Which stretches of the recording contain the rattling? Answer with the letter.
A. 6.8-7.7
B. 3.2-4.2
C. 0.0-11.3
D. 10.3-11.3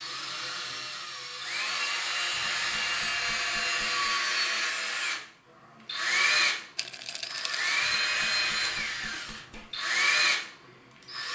A.